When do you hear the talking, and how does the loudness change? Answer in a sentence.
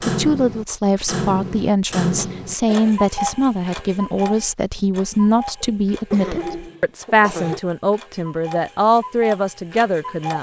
The talking can be heard from 0.1 to 10.3 s, at a steady volume.